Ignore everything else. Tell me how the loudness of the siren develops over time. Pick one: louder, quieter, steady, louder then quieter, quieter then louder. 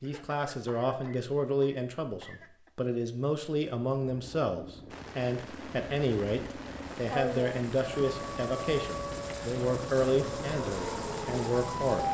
steady.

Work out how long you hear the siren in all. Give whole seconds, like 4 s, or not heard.
4 s.